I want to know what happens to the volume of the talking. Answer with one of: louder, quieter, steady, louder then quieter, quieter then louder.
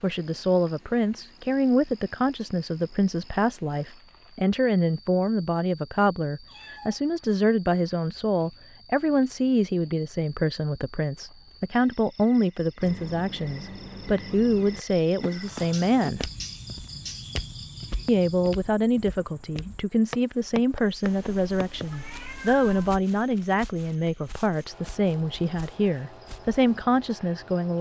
steady.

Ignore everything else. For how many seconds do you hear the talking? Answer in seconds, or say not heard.
26 s.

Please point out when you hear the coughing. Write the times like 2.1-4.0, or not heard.
not heard.